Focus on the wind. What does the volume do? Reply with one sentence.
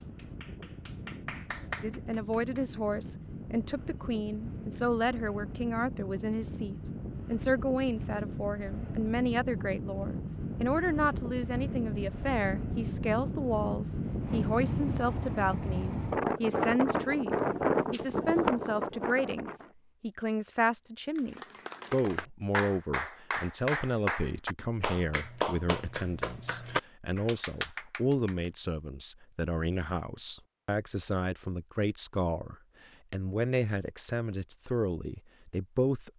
The volume of the wind goes up.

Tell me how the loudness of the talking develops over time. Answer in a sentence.
The loudness of the talking stays about the same.